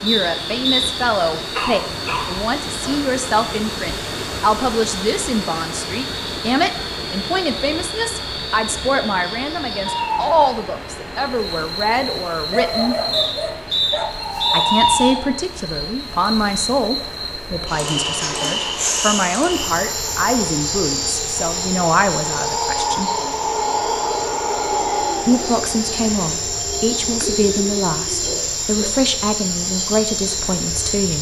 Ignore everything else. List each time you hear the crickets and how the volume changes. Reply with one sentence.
The crickets can be heard from 0.0 to 31.1 s, getting louder.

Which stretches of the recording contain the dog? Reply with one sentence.
You can hear the dog from 1.5 to 3.1 s, from 12.5 to 14.8 s and from 27.1 to 28.9 s.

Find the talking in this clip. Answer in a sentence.
The talking can be heard from 0.0 to 12.9 s, from 14.5 to 23.1 s and from 25.2 to 31.1 s.